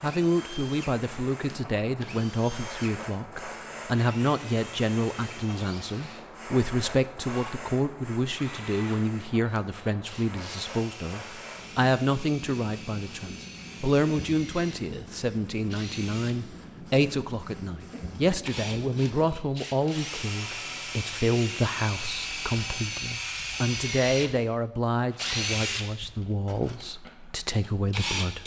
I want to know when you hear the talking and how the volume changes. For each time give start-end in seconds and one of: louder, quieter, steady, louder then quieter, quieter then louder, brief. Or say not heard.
0.0-28.4 steady.